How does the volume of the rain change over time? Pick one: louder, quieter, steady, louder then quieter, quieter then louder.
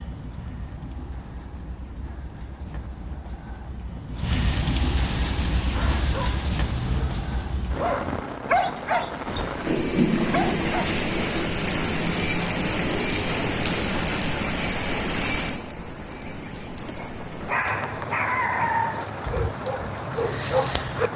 louder then quieter.